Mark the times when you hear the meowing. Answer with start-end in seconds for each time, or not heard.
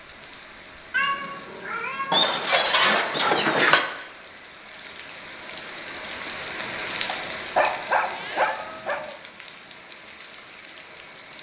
0.9-2.3, 8.1-8.9.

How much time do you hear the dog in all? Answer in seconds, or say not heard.
4 s.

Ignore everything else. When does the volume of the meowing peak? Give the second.
1 s.